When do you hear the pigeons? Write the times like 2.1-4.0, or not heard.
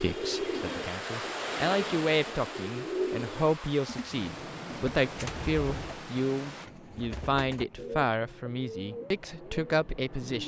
0.0-10.4.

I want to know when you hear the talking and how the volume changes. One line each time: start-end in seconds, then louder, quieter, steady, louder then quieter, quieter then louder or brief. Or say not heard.
0.0-10.4 steady.